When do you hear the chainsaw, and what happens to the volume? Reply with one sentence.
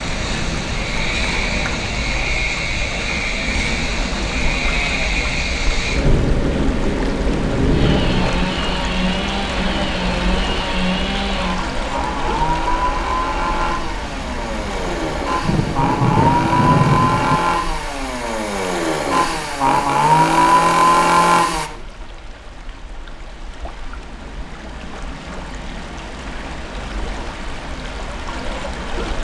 The chainsaw can be heard from 0.0 to 21.7 s, getting louder.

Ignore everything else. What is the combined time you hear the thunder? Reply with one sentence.
You can hear the thunder for 5 seconds altogether.